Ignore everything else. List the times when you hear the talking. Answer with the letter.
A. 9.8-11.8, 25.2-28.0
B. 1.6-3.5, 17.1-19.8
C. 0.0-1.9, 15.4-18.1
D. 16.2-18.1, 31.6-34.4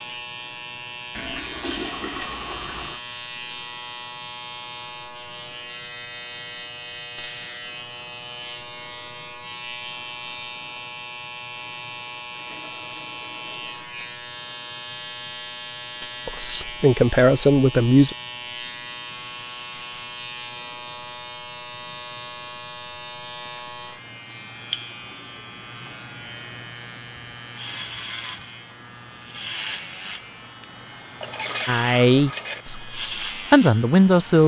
D.